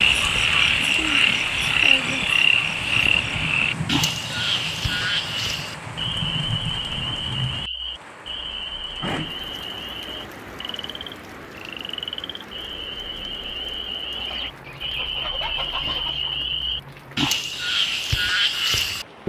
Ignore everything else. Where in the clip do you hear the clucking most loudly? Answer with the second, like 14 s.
16 s.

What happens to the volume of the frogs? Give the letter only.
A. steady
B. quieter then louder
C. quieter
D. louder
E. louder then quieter
B.